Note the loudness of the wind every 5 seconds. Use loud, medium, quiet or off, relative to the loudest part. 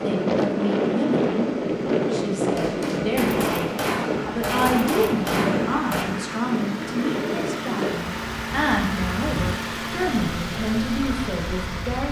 loud, medium, quiet.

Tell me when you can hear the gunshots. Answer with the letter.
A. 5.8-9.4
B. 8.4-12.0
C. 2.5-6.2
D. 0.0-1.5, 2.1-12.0
C.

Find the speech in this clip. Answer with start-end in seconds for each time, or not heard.
0.0-1.5, 2.1-12.0.